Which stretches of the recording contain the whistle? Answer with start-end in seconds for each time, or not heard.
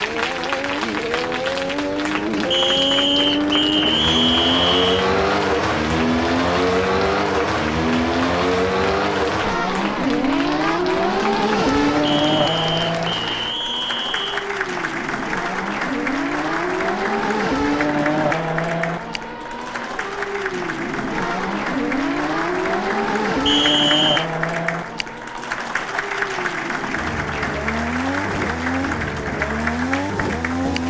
2.5-5.0, 12.1-14.5, 23.4-24.2.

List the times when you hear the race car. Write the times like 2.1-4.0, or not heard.
0.0-30.8.